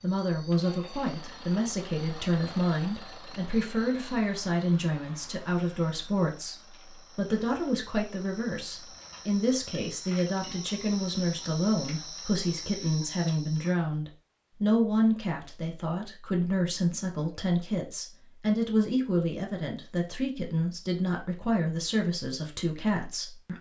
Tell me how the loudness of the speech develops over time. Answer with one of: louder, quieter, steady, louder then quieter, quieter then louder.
steady.